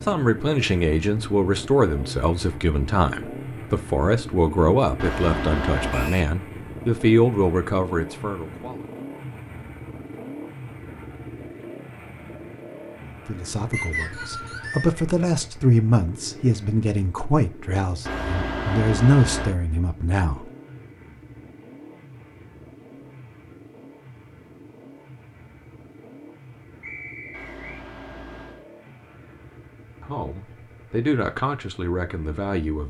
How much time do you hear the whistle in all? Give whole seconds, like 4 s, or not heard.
3 s.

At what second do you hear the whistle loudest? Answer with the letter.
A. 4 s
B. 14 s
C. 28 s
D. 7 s
B.